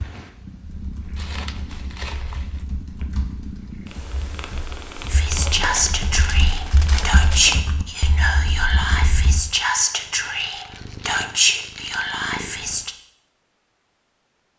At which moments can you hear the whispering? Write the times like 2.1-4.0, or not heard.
5.1-12.9.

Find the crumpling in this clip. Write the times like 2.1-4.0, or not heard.
1.1-2.6, 5.6-7.6, 9.8-12.1.